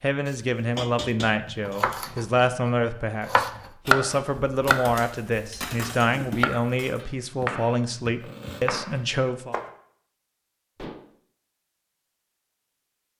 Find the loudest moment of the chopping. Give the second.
4 s.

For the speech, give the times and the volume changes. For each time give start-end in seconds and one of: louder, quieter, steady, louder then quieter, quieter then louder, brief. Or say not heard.
0.0-9.6 steady.